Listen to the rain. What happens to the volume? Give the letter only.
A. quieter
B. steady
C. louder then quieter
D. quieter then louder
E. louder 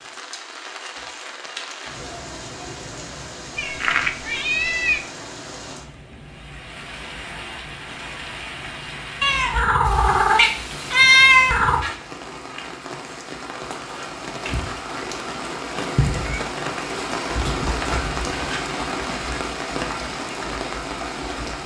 E.